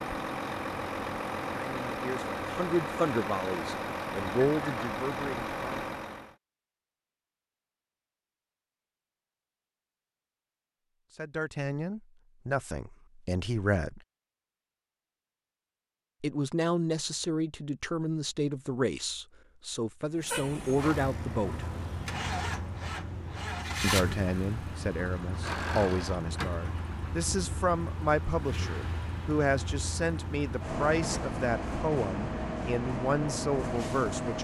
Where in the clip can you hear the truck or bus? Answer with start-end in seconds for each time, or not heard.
0.0-6.3, 20.1-34.3.